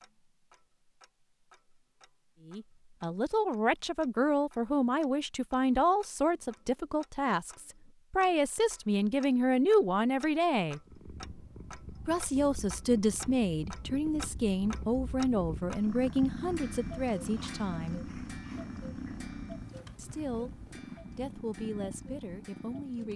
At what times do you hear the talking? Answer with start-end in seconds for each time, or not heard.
2.5-10.8, 12.1-18.1, 19.9-23.1.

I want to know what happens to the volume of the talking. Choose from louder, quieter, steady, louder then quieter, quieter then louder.
quieter.